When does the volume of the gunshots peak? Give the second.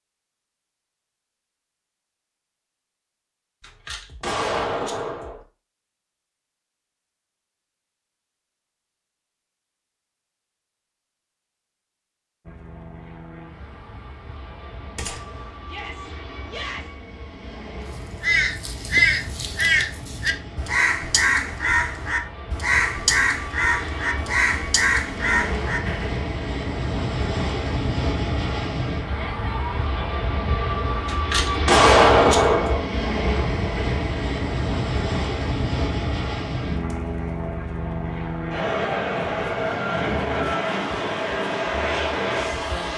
32 s.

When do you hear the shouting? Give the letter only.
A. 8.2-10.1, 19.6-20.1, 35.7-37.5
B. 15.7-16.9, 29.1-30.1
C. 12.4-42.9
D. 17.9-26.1
B.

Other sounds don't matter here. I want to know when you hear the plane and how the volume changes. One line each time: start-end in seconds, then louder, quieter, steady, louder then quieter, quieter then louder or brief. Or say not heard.
12.4-42.9 louder.